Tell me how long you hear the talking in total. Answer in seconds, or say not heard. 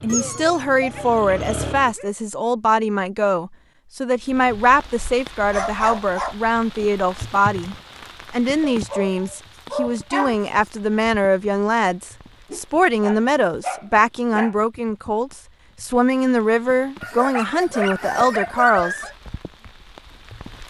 19 s.